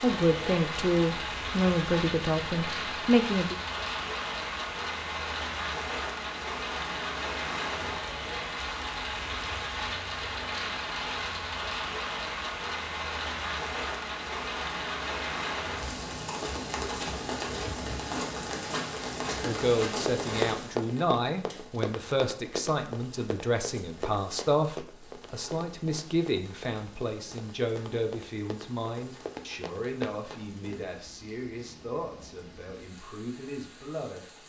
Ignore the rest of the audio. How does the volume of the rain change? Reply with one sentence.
The loudness of the rain goes down.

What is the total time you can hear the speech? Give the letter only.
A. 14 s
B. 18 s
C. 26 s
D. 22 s
B.